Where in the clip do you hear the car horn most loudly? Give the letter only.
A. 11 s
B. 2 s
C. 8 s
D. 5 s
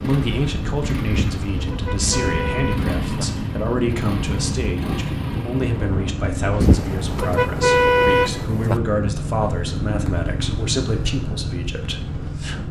C.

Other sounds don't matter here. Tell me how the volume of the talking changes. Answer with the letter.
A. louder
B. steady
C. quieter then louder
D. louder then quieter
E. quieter
B.